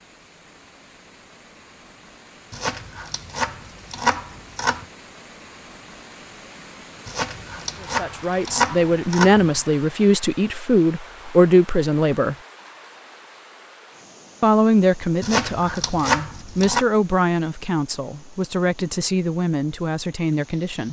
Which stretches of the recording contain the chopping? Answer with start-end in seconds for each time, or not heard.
2.5-4.8, 7.0-9.6, 15.2-16.9.